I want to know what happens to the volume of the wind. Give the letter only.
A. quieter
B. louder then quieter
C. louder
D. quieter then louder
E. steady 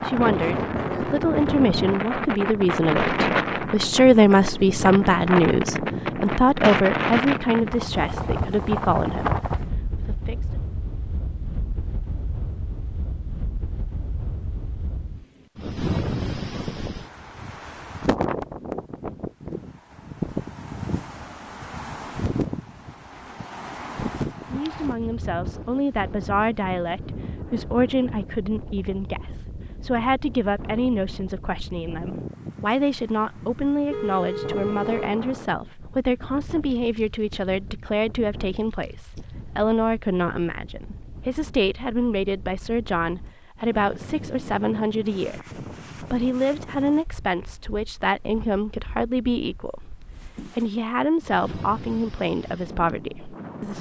A.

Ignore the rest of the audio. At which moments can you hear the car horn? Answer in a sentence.
The car horn can be heard from 33.9 to 35.2 s.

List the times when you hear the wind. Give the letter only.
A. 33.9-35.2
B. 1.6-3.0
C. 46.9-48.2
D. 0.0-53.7
D.